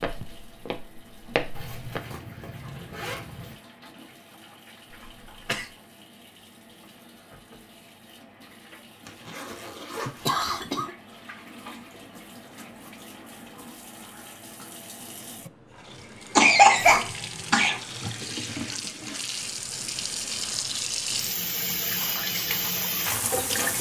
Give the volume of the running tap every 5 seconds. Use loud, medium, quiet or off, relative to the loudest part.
quiet, quiet, quiet, medium, loud.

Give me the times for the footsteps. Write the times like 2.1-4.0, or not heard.
0.0-2.2, 21.9-23.7.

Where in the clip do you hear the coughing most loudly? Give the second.
17 s.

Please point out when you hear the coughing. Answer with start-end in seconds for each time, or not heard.
4.9-5.7, 10.1-10.9, 16.4-17.8.